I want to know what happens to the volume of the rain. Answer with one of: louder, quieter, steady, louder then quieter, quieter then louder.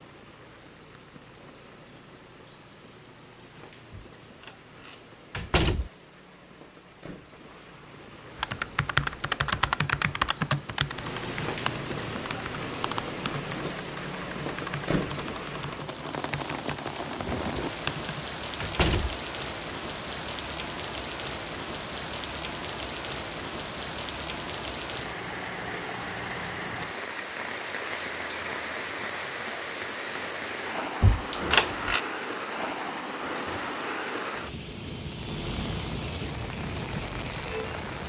louder.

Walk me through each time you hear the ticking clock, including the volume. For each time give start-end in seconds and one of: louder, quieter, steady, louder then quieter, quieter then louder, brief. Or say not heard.
not heard.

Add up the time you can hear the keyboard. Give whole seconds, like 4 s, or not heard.
10 s.